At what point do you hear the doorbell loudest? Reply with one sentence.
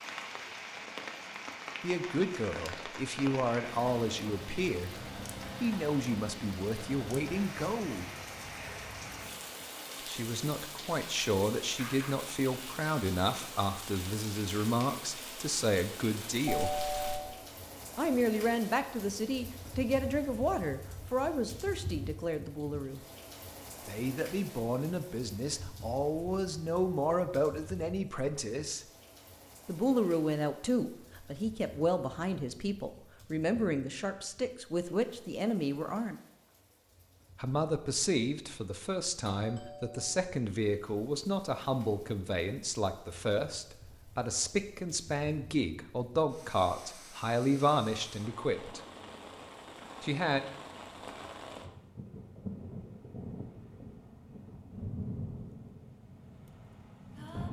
The volume of the doorbell peaks at 17 seconds.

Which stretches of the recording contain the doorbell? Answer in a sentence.
You can hear the doorbell from 16.4 to 17.3 s and from 39.2 to 40.0 s.